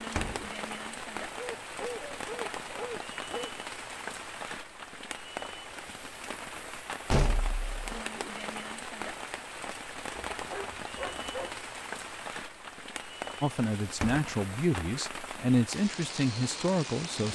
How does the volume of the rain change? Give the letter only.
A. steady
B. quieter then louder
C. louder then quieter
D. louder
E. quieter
A.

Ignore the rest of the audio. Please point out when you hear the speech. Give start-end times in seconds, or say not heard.
13.4-17.3.